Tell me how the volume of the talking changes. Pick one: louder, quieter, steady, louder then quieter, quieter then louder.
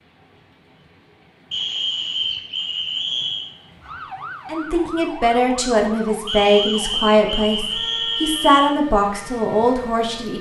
steady.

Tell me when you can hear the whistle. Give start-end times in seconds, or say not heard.
1.5-3.5, 6.2-8.7.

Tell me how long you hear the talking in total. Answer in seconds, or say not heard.
6 s.